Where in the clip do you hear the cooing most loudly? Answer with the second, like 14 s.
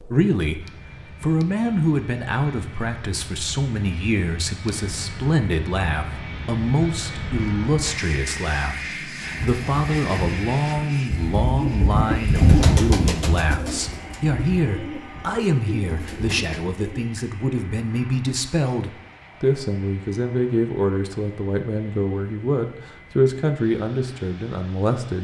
13 s.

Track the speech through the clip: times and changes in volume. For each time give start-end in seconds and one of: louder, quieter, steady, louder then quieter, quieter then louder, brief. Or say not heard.
0.0-25.1 steady.